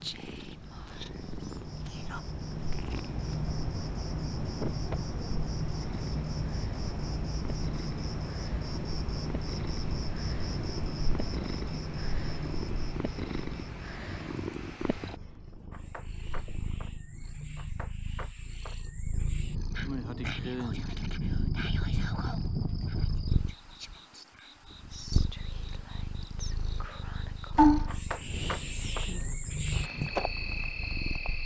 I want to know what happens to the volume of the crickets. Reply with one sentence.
The loudness of the crickets goes down, then up.